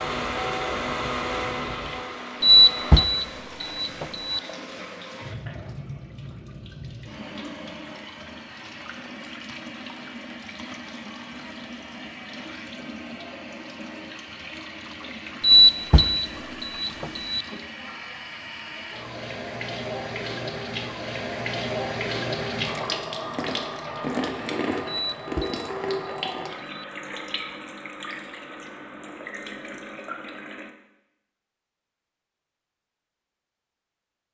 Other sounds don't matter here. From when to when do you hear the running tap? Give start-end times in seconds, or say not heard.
0.0-30.7.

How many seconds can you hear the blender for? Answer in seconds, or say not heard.
3 s.